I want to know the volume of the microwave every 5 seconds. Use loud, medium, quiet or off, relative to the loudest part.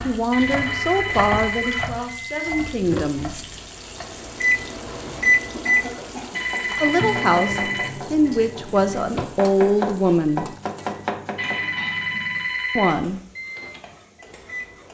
loud, loud, quiet.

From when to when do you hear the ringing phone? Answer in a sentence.
The ringing phone can be heard from 0.3 to 1.9 s, from 6.3 to 8.0 s and from 11.3 to 13.0 s.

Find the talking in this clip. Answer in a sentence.
You can hear the talking from 0.0 to 3.5 s, from 6.8 to 10.5 s and from 12.8 to 13.2 s.